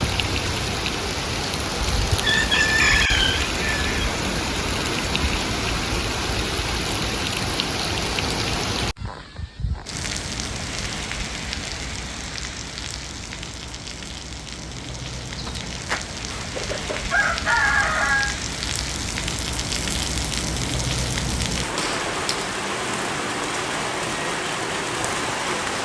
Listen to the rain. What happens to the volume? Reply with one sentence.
The volume of the rain goes down, then up.